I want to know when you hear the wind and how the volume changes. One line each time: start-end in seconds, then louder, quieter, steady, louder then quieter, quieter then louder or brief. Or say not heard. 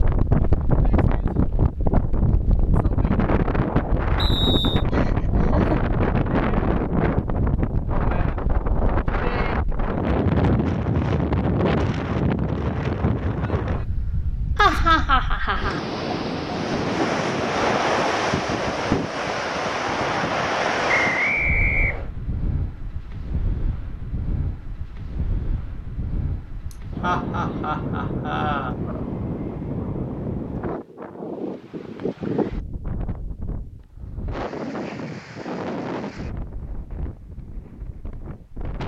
0.0-38.8 quieter.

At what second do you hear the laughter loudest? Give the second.
15 s.